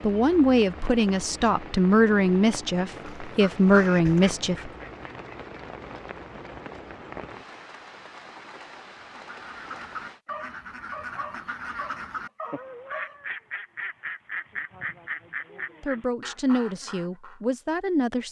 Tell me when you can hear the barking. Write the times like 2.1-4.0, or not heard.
10.2-13.2.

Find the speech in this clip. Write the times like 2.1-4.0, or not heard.
0.0-4.7, 15.8-18.2.